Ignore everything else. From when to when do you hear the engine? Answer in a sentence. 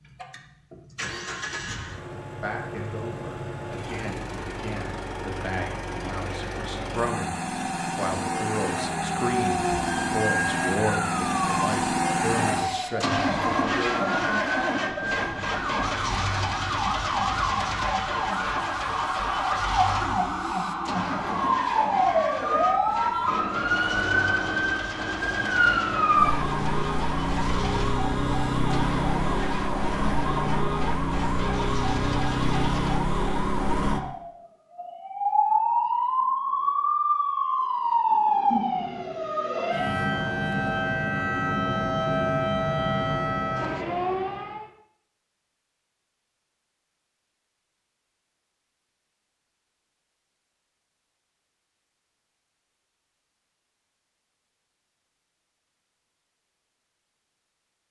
You can hear the engine from 0.0 to 33.0 s.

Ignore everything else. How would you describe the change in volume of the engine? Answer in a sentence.
The volume of the engine goes up, then down.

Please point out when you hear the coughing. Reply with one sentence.
The coughing can't be heard in this clip.